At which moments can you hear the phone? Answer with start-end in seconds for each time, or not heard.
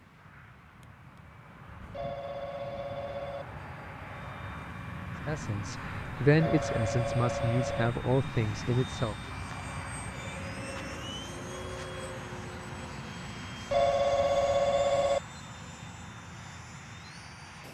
1.9-3.5, 6.3-7.9, 13.7-15.2.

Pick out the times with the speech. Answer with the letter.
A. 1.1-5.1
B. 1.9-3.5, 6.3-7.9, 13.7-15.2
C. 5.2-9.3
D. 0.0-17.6
C.